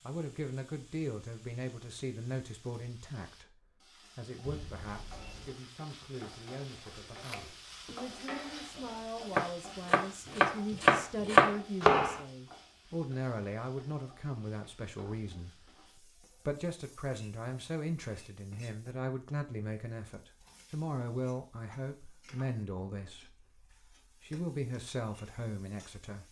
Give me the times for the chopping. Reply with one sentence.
The chopping can be heard from 6.8 to 12.2 s.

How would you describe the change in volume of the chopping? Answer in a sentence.
The volume of the chopping goes down, then up.